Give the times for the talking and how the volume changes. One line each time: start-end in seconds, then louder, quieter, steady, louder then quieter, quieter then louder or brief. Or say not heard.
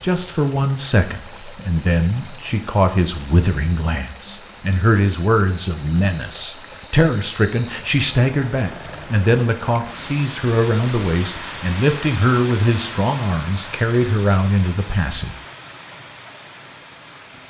0.0-15.3 steady.